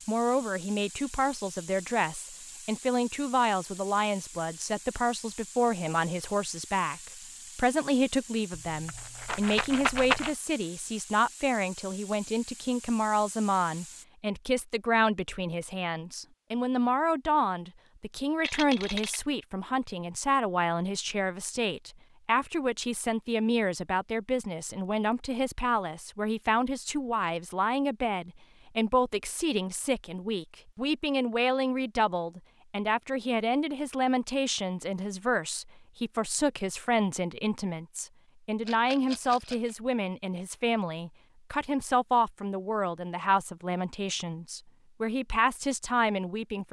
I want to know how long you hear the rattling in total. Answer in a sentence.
You can hear the rattling for 4 seconds altogether.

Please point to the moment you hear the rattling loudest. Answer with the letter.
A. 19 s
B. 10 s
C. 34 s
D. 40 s
B.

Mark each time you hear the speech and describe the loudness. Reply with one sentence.
The speech can be heard from 0.1 to 46.6 s, at a steady volume.